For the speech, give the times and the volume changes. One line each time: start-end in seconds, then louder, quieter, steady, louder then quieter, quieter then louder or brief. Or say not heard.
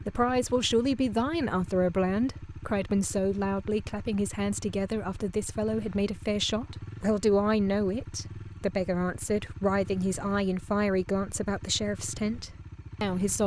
0.1-13.4 steady.